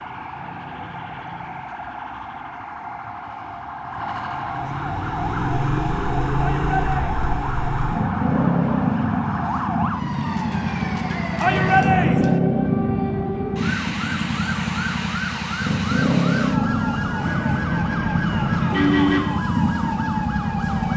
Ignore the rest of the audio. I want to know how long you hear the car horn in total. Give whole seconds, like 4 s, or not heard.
4 s.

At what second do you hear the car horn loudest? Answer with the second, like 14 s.
19 s.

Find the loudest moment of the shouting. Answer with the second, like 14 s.
12 s.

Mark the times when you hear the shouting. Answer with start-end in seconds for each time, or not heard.
6.3-7.2, 11.4-12.4.